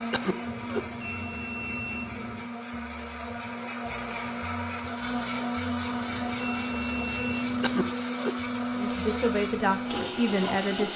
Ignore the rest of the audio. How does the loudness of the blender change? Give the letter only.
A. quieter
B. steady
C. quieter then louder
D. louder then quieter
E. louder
E.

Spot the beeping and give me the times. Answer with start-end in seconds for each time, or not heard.
0.4-2.5, 5.8-7.8.